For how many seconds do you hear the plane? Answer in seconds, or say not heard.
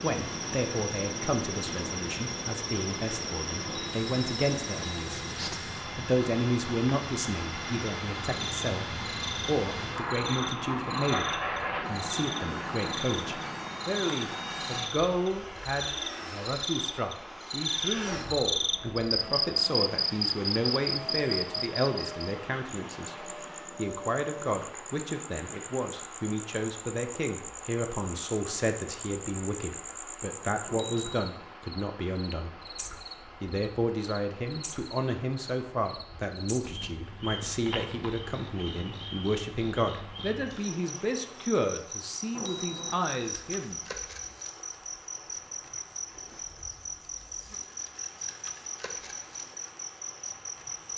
25 s.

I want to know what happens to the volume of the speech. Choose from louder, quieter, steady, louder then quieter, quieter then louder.
steady.